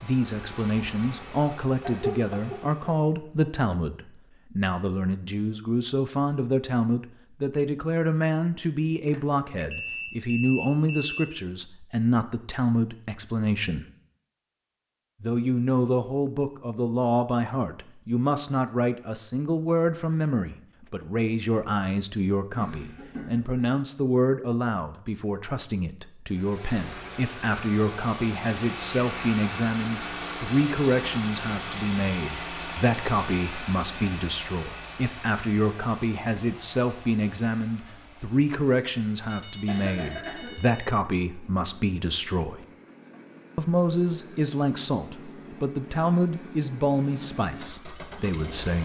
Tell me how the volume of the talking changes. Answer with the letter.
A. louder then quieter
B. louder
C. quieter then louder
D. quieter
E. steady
E.